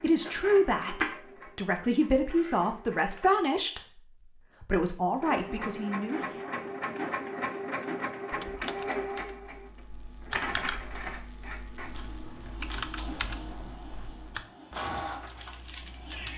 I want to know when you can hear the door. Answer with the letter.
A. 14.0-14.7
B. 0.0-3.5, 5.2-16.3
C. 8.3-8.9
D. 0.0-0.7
C.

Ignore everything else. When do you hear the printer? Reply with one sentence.
You can hear the printer from 0.0 to 3.5 s and from 5.2 to 16.3 s.